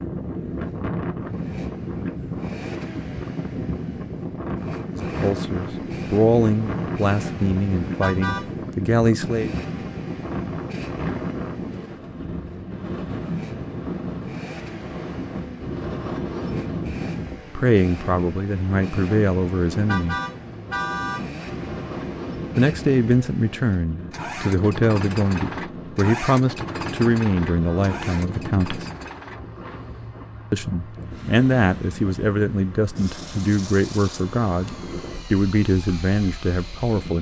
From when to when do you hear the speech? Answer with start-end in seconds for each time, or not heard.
4.9-9.5, 17.6-20.2, 22.6-28.9, 30.5-37.1.